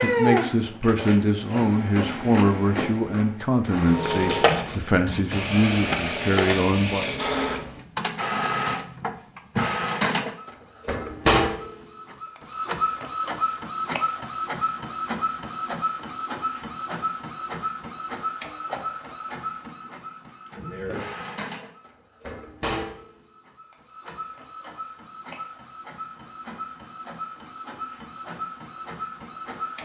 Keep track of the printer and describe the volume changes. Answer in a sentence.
The volume of the printer goes down.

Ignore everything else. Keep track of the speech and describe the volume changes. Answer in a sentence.
The volume of the speech stays about the same.